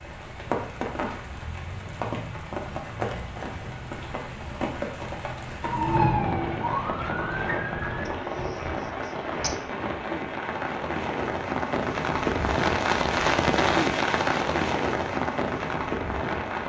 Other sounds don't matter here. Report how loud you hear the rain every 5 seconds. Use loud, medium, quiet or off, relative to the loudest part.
medium, medium, loud, loud.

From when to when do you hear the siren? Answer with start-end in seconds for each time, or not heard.
5.6-8.1.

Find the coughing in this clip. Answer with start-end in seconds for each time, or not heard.
8.1-9.6.